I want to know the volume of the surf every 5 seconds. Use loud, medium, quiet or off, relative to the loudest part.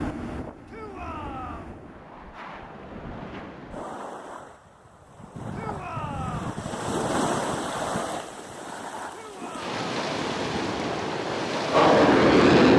medium, loud, loud.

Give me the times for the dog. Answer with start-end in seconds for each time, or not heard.
not heard.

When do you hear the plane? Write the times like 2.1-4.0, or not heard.
11.2-12.7.